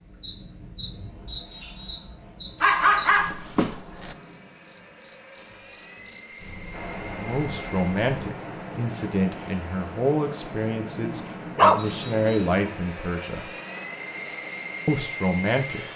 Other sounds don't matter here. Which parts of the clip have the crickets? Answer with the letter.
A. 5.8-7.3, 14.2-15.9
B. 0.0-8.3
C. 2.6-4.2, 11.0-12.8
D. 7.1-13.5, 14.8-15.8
B.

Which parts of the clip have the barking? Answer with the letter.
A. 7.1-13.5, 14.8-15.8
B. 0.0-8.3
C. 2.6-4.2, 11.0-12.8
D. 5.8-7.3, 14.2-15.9
C.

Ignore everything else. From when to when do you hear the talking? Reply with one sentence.
The talking can be heard from 7.1 to 13.5 s and from 14.8 to 15.8 s.